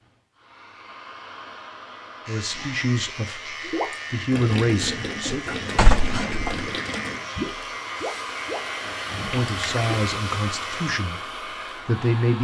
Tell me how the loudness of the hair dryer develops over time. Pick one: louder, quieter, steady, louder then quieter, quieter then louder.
louder.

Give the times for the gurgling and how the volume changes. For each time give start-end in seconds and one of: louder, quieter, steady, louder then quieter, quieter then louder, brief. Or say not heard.
3.6-10.4 steady.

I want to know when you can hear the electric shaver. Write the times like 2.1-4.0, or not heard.
2.2-10.9.